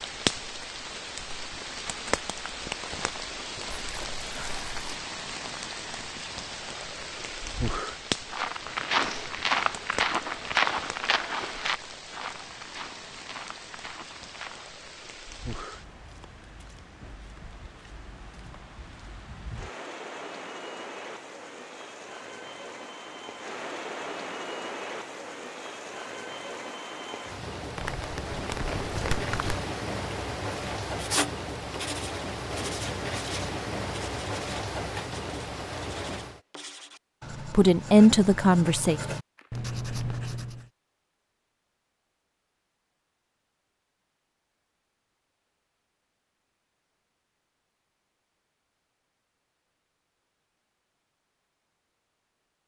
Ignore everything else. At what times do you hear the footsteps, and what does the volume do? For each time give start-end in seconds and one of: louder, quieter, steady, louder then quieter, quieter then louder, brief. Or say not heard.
8.3-14.8 quieter.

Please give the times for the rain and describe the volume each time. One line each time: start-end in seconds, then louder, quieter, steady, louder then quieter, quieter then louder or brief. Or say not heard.
0.0-36.4 quieter then louder.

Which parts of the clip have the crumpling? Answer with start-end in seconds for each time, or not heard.
3.7-4.8, 27.8-29.6, 39.4-40.1.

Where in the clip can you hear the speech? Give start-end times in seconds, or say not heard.
37.5-39.0.